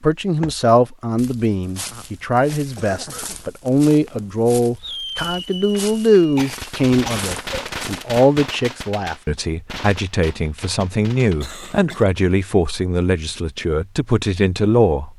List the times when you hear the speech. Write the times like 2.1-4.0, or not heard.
0.0-15.1.